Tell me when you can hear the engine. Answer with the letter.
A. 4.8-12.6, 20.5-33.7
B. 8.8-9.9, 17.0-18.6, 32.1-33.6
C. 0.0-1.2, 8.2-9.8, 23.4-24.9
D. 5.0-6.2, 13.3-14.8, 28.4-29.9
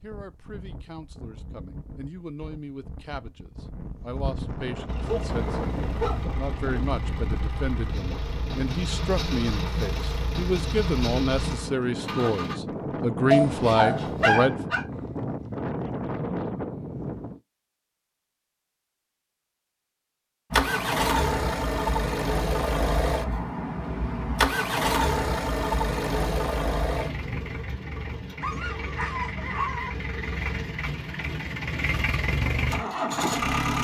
A.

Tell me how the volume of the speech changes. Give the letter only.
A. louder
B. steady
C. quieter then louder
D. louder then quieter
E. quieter
A.